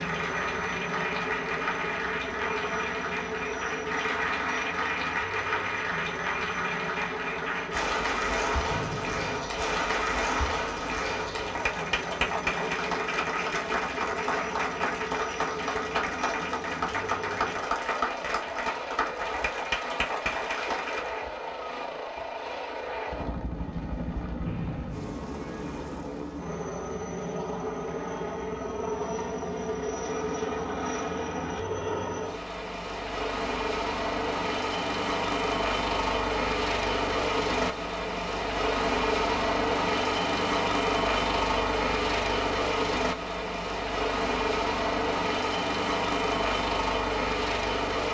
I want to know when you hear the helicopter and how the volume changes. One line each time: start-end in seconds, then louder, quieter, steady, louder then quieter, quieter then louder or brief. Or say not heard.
0.0-48.0 louder.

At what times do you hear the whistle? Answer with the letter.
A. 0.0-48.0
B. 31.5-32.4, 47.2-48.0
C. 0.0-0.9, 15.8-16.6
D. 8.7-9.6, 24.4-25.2
D.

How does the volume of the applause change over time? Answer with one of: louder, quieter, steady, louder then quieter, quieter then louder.
steady.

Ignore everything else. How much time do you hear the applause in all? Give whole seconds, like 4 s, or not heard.
21 s.